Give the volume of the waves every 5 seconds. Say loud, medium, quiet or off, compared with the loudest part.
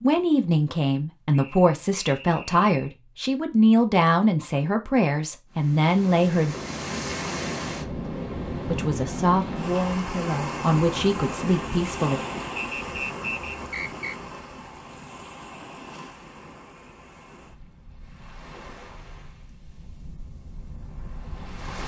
off, loud, loud, quiet, medium.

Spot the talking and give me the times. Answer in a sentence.
You can hear the talking from 0.0 to 6.5 s and from 8.6 to 12.2 s.